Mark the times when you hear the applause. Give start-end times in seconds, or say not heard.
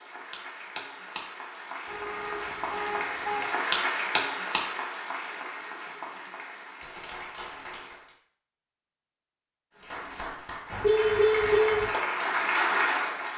0.0-8.2, 9.8-13.3.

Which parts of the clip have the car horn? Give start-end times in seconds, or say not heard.
1.9-3.5, 10.7-11.9.